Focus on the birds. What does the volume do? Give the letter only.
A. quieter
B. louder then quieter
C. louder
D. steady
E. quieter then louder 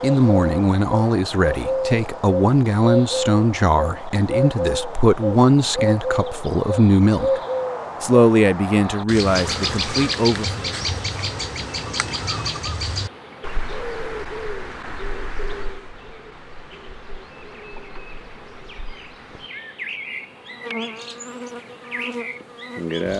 A.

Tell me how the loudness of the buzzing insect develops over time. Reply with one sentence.
The volume of the buzzing insect goes down, then up.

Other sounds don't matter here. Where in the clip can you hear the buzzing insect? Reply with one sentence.
You can hear the buzzing insect from 9.2 to 23.1 s.